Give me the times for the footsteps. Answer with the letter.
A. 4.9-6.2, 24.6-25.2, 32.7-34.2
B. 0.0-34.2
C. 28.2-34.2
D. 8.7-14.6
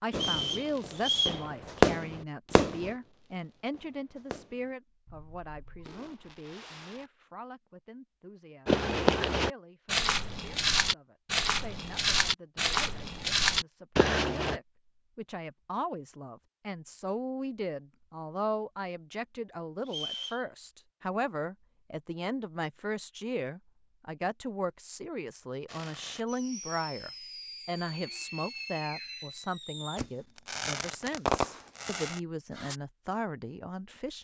D.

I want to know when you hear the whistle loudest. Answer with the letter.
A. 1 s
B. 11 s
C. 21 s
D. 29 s
A.